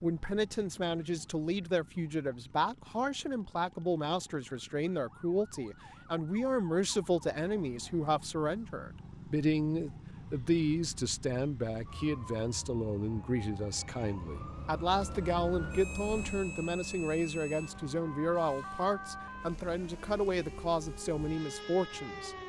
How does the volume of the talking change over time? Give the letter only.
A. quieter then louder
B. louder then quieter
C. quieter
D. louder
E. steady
E.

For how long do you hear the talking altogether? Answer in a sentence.
You can hear the talking for 22 seconds altogether.